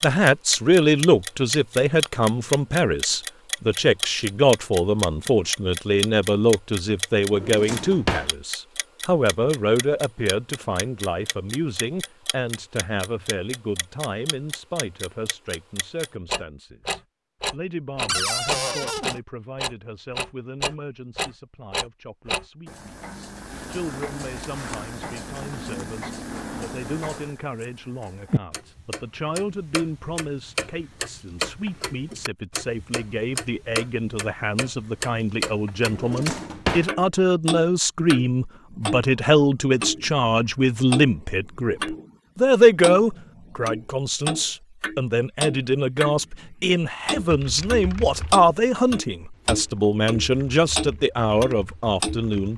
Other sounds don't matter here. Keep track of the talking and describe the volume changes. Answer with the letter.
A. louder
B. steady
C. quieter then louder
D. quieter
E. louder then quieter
C.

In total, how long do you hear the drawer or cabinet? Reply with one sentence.
The drawer or cabinet can be heard for 3 seconds in total.